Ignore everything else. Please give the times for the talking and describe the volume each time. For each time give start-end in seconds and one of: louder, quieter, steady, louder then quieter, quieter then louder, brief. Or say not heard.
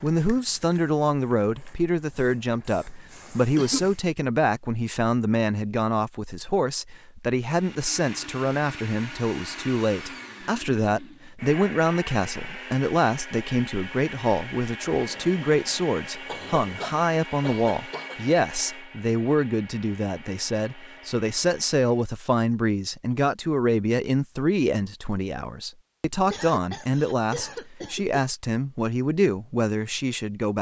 0.0-30.5 steady.